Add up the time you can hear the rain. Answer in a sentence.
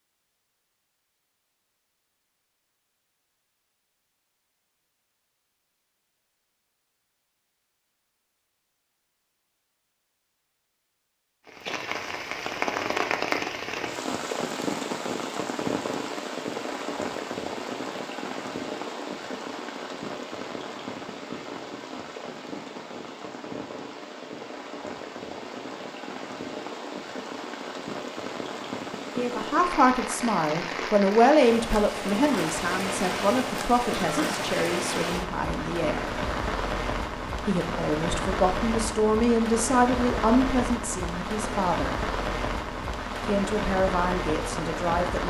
The rain can be heard for 34 seconds in total.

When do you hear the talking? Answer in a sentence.
You can hear the talking from 29.1 to 36.0 s, from 37.5 to 42.0 s and from 43.2 to 45.2 s.